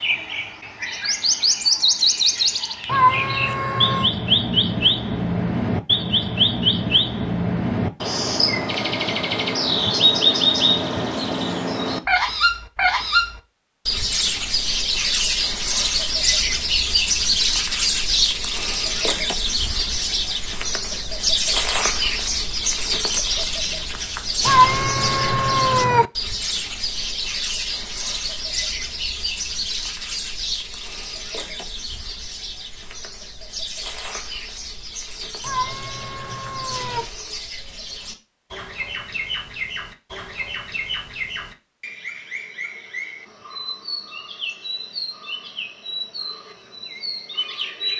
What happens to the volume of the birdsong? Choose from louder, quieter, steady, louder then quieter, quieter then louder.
quieter.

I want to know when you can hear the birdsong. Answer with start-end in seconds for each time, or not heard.
0.0-47.9.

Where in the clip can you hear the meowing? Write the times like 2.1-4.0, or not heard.
2.9-4.1, 24.4-26.1, 35.4-37.0.